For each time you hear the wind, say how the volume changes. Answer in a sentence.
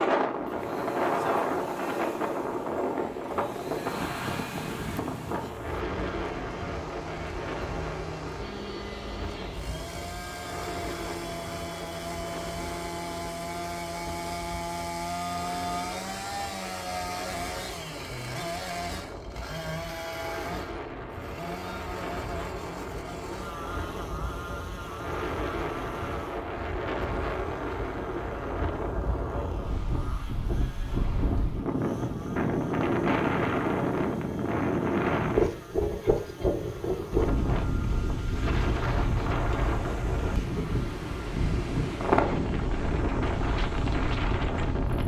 The wind can be heard from 0.0 to 45.0 s, getting quieter then louder.